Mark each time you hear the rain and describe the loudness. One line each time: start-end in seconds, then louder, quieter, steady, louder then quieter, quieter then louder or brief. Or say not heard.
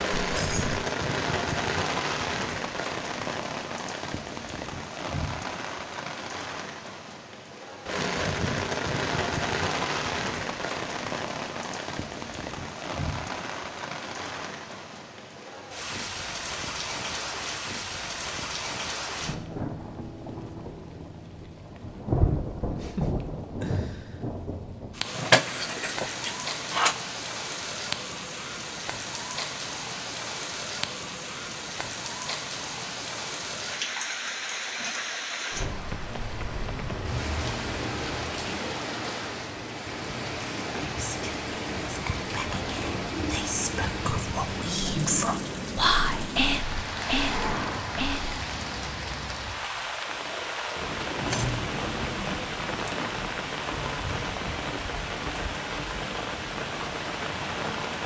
0.0-58.0 steady.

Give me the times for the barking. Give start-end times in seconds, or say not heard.
not heard.